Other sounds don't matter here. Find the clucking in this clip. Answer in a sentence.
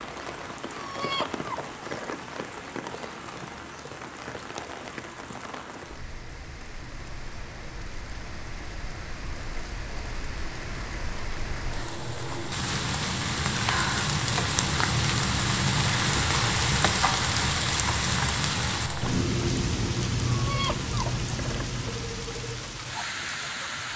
The clucking can be heard from 0.8 to 2.4 s and from 20.3 to 21.9 s.